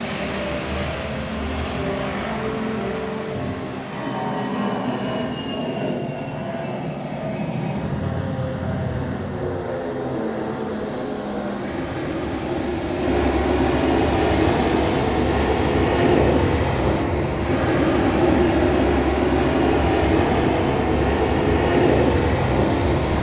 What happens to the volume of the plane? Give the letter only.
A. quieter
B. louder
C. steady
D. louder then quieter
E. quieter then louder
B.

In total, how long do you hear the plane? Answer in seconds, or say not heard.
23 s.